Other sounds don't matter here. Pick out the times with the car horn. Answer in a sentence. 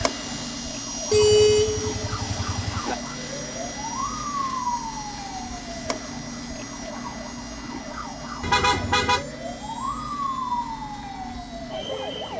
You can hear the car horn from 1.1 to 3.0 s and from 8.4 to 9.2 s.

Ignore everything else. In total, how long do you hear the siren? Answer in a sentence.
You can hear the siren for 12 seconds altogether.